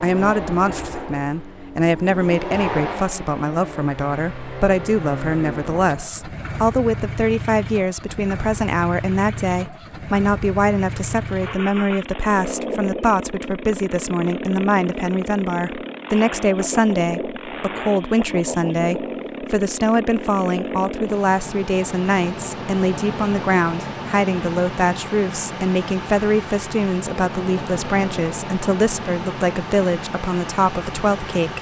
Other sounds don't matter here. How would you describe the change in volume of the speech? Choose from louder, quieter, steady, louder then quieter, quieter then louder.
steady.